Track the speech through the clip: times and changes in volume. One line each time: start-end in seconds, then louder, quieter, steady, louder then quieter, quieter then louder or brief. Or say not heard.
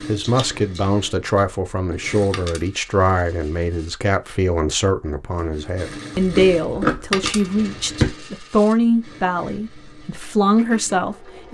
0.1-11.4 steady.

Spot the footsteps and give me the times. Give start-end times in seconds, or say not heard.
not heard.